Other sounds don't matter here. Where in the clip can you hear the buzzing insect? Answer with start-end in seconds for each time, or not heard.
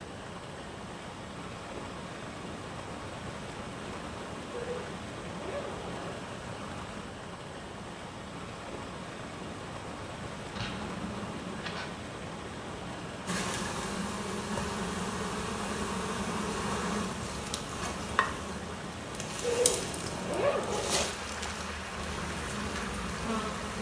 13.2-23.7.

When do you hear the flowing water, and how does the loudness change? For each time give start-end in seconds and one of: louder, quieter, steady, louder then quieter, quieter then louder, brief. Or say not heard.
0.0-23.7 steady.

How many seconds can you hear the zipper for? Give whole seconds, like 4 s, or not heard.
5 s.